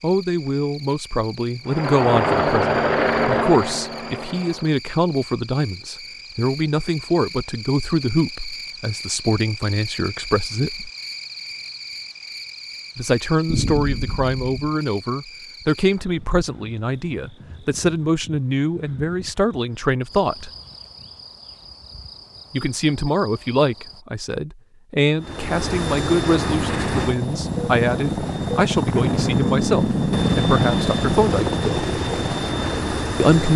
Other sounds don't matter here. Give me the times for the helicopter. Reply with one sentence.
You can hear the helicopter from 1.6 to 4.8 s and from 25.1 to 33.5 s.